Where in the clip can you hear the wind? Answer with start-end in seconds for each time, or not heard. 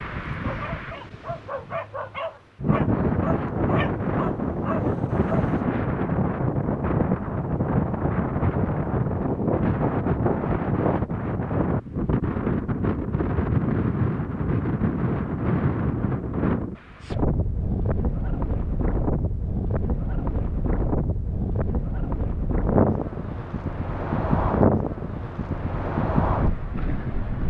0.0-27.4.